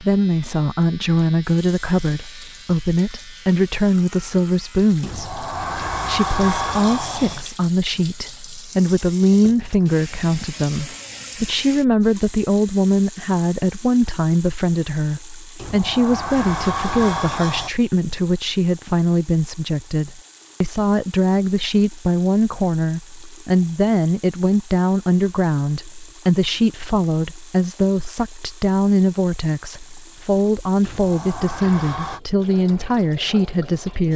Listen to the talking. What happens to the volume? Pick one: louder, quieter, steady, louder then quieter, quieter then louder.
steady.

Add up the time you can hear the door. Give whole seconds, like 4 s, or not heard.
6 s.